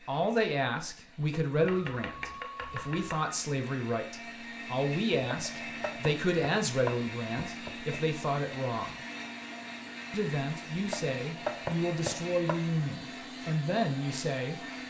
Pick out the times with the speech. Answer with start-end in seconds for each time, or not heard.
0.1-8.9, 10.1-14.6.